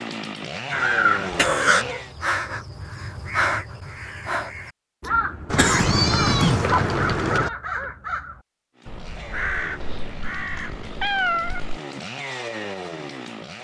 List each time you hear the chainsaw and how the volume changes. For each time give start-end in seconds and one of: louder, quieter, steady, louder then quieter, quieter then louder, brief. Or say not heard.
0.0-2.1 brief
8.8-13.5 louder.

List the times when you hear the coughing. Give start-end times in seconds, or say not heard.
5.5-7.4.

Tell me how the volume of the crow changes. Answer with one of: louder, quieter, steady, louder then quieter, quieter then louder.
quieter.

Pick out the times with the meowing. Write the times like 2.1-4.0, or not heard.
1.3-2.0, 5.5-7.5, 9.8-11.8.